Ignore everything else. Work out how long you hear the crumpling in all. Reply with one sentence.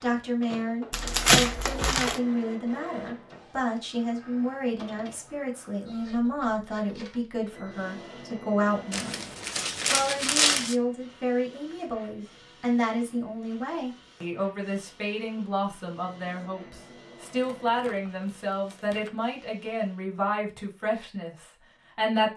You can hear the crumpling for 5 seconds altogether.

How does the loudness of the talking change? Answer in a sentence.
The volume of the talking stays about the same.